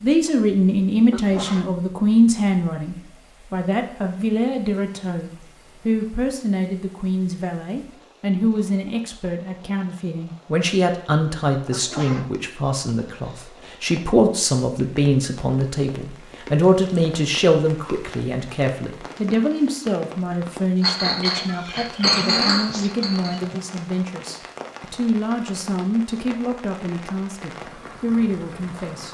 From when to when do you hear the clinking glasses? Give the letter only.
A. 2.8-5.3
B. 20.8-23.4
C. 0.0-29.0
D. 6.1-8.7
B.